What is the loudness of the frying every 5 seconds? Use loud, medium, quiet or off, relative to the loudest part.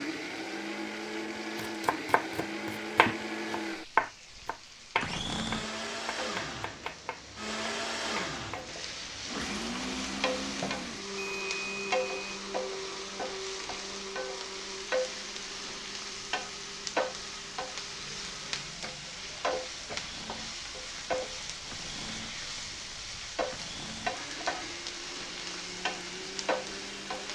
quiet, medium, loud, loud, loud, loud.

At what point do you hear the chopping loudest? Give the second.
4 s.